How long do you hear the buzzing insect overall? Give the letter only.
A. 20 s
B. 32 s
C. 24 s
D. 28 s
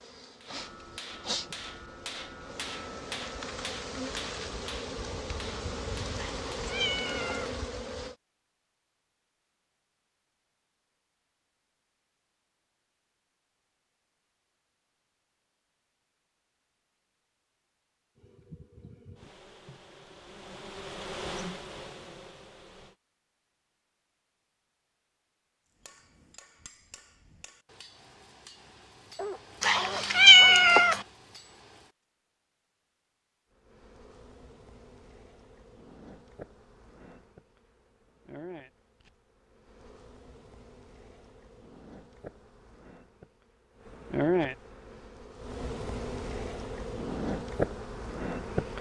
D.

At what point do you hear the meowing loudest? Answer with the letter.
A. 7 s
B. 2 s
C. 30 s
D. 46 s
C.